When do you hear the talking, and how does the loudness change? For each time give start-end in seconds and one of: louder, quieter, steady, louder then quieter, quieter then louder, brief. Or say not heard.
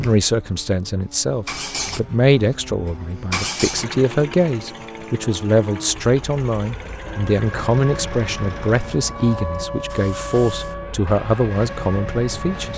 0.0-12.7 steady.